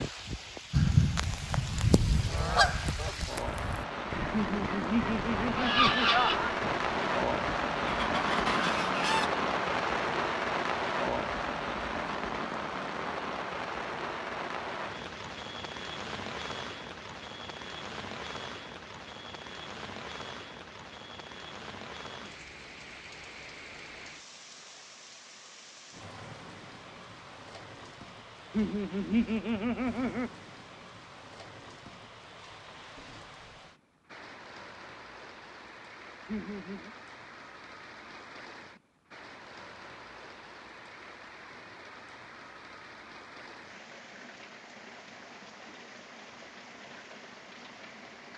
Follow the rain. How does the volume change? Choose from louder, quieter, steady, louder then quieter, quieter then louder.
quieter.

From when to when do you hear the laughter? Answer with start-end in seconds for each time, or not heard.
4.3-6.5, 28.5-30.3, 36.2-37.0.